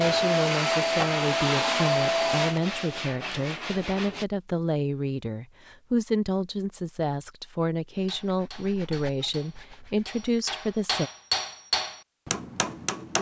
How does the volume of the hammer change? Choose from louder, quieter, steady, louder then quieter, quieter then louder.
louder then quieter.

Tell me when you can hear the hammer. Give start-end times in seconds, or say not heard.
8.1-13.1.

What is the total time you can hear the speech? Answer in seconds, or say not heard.
11 s.